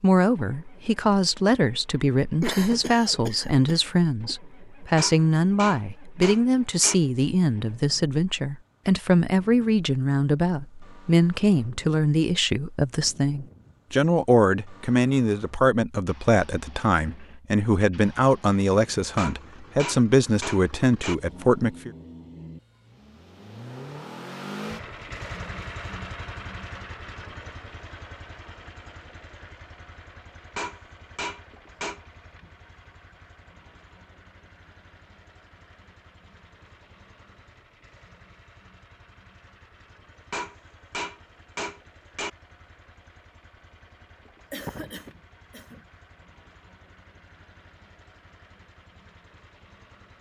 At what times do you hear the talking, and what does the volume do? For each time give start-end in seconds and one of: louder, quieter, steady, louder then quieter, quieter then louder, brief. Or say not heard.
0.0-21.9 steady.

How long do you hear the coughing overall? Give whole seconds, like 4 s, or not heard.
3 s.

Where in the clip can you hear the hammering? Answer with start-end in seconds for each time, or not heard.
5.0-7.0, 19.1-21.1, 30.6-32.0, 40.3-42.3.